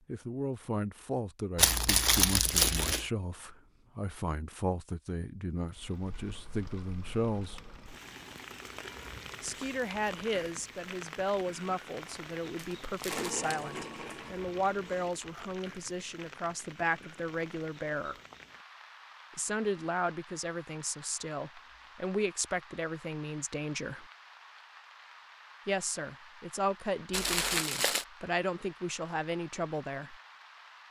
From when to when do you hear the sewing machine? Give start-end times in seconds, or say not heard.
13.1-15.2.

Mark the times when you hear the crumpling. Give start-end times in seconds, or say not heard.
1.6-3.0, 12.6-13.5, 27.1-28.1.